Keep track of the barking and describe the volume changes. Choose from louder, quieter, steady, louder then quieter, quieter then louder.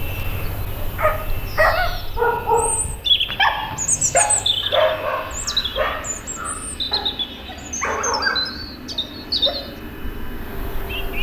quieter then louder.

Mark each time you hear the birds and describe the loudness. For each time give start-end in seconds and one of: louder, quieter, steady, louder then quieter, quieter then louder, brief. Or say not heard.
0.0-11.1 louder then quieter.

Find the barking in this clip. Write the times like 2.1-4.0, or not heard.
0.8-9.6.